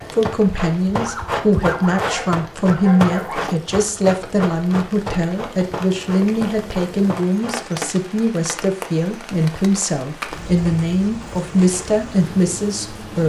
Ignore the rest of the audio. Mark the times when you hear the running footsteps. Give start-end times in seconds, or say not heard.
0.1-7.5.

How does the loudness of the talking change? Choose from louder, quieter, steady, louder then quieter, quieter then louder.
steady.